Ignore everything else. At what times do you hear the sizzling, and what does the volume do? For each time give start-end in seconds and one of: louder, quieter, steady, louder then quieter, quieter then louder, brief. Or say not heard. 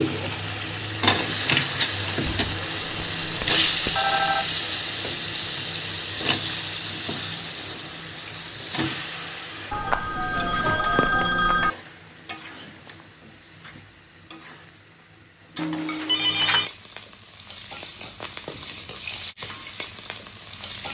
0.0-20.8 quieter then louder.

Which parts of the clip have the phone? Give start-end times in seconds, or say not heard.
2.2-4.5, 9.7-11.7, 15.6-16.7.